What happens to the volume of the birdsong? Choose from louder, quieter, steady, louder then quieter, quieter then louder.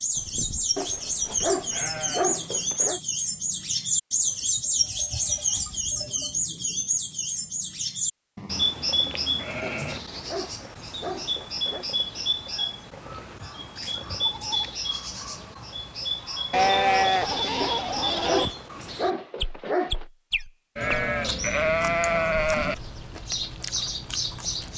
quieter.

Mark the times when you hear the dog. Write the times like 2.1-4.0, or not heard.
0.8-3.0, 9.6-11.8, 17.6-20.1.